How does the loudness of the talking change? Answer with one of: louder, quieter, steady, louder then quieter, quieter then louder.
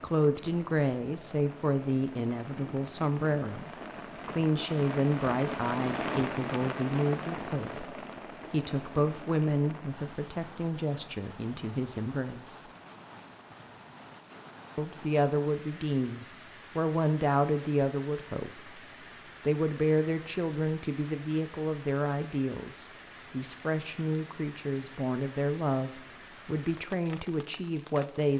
steady.